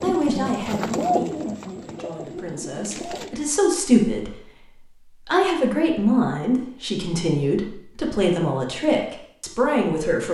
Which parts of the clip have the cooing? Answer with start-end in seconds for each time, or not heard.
0.0-3.3.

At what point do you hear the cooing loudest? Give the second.
1 s.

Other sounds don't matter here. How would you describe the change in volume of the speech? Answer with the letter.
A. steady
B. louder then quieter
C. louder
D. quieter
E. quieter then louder
C.